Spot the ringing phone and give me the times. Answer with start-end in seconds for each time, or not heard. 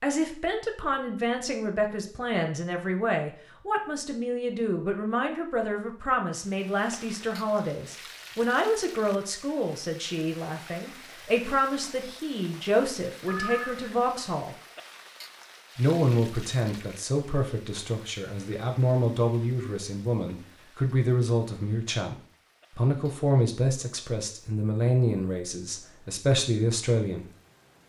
13.2-13.9.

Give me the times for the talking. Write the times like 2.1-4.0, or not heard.
0.0-14.6, 15.8-27.2.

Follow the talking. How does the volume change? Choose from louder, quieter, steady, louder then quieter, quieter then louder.
steady.